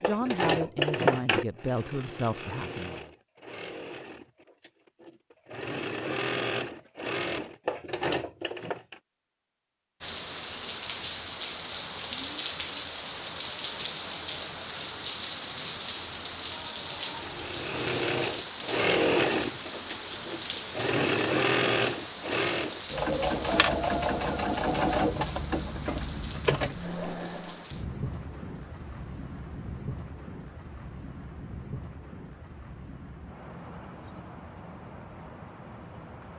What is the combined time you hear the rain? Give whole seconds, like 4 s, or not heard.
26 s.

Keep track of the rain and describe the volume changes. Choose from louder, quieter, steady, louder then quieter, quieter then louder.
quieter.